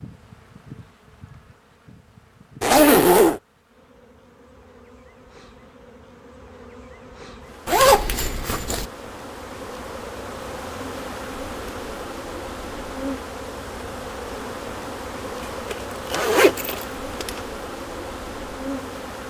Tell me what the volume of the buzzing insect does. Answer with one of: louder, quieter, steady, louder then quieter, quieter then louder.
louder.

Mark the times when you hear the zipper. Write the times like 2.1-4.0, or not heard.
2.6-3.4, 7.7-8.8, 15.7-17.4.